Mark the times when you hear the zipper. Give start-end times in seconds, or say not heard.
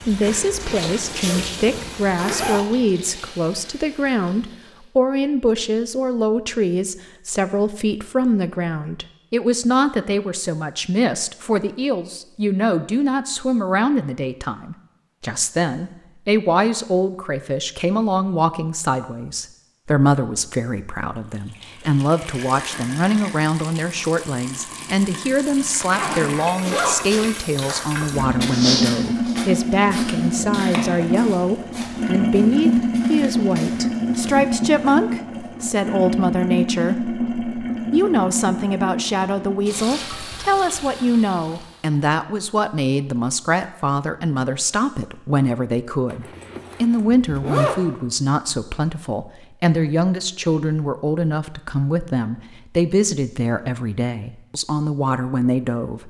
1.2-2.6, 25.8-27.3, 46.1-47.9.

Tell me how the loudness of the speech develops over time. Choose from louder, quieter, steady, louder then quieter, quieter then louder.
steady.